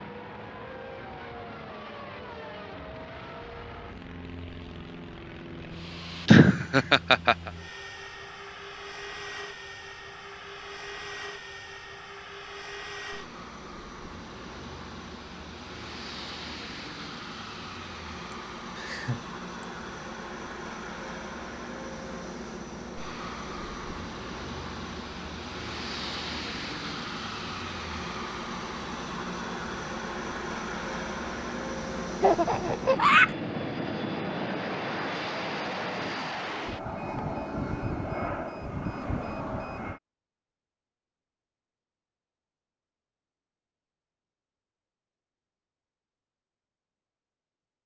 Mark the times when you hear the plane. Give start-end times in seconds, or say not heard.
0.0-40.0.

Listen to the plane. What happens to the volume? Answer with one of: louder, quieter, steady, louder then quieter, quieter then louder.
louder.